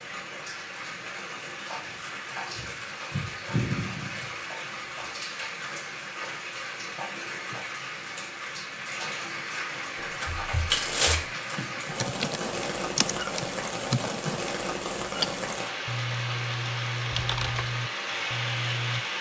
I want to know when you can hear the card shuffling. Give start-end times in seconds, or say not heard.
10.2-11.7.